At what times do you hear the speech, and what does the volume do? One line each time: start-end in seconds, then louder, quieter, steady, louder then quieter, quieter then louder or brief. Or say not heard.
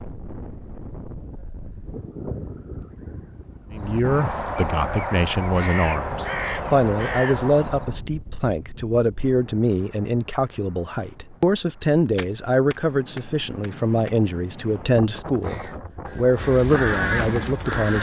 3.7-17.9 steady.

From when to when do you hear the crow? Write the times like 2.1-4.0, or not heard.
3.7-8.0, 15.2-17.9.